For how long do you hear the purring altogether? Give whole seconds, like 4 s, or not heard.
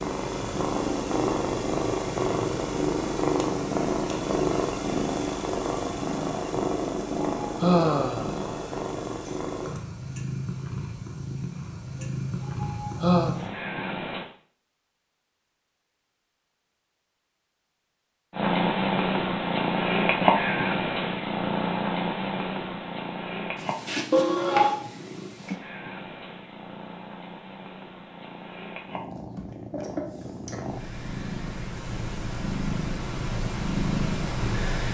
31 s.